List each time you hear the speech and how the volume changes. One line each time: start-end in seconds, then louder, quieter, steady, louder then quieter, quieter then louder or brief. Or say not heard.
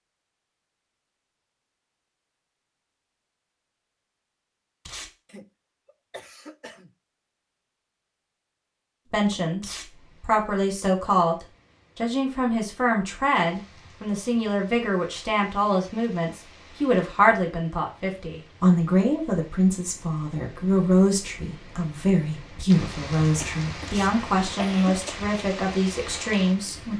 9.1-11.3 brief
11.9-26.9 steady.